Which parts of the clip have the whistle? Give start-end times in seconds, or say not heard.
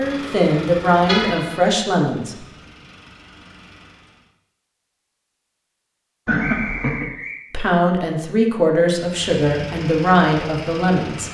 6.4-7.3.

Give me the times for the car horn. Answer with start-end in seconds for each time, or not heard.
1.1-1.8, 6.2-7.0.